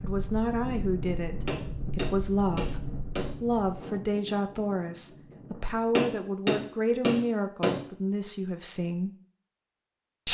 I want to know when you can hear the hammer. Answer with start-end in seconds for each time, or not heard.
1.4-3.4, 6.0-7.8.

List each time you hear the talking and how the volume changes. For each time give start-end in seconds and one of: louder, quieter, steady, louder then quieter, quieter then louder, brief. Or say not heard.
0.0-9.1 steady.